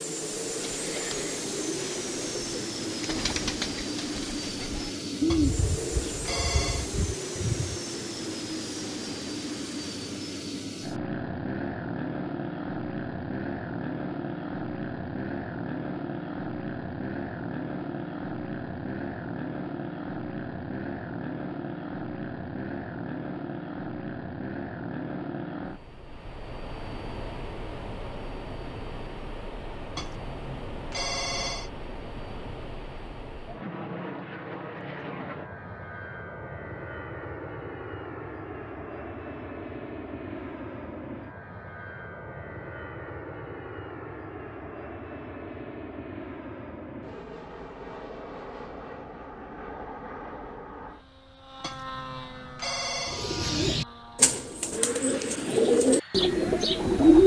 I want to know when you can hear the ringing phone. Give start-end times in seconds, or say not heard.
5.3-6.9, 29.9-31.7, 51.6-53.3.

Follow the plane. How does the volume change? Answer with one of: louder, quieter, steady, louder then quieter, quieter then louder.
quieter.